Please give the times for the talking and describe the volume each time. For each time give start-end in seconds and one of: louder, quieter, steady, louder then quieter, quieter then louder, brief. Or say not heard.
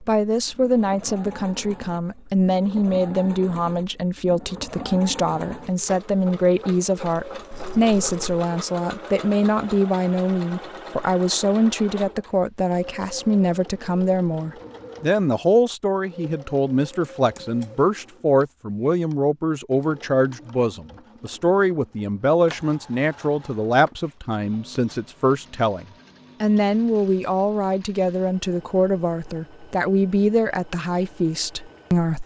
0.0-32.2 steady.